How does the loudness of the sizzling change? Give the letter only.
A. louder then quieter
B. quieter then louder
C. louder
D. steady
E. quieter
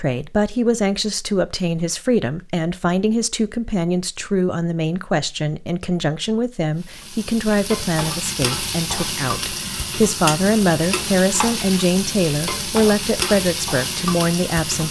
D.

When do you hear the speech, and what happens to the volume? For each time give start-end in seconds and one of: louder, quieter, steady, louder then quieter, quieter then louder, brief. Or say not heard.
0.0-14.8 steady.